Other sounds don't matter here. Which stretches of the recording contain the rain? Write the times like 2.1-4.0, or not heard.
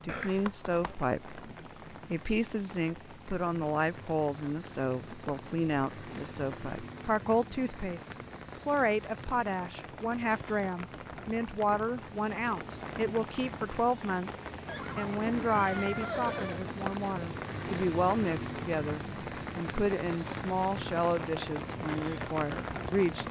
0.0-23.2.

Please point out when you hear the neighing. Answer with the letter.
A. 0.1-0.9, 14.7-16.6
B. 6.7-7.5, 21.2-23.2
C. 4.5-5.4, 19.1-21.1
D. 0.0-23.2
A.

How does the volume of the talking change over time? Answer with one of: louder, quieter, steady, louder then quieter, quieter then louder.
steady.